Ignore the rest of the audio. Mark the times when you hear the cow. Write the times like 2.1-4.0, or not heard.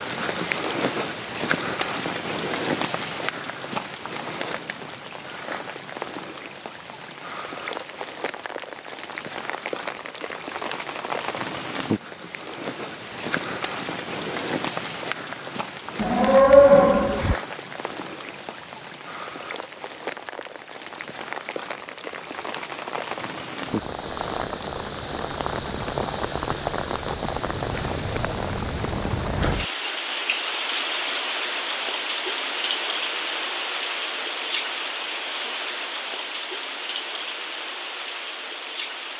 15.9-17.4.